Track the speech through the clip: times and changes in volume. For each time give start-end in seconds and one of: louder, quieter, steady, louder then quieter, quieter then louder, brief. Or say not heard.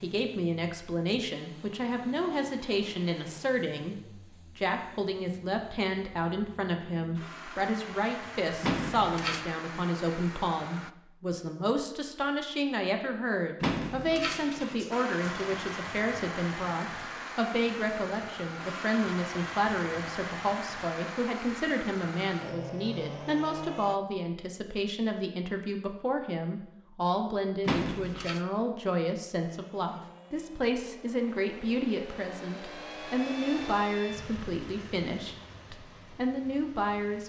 0.0-37.2 steady.